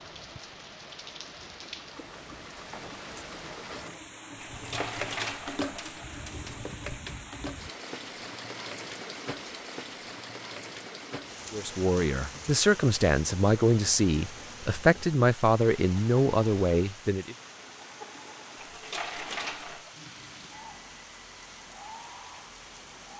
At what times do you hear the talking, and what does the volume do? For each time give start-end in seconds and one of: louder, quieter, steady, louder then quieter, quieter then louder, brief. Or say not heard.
11.5-17.4 steady.